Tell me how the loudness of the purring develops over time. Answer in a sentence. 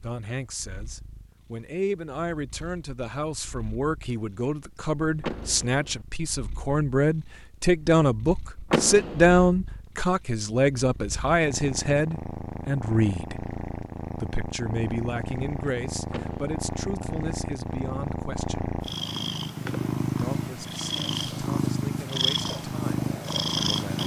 The volume of the purring goes up.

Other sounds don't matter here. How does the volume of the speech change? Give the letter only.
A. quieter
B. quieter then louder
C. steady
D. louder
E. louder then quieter
E.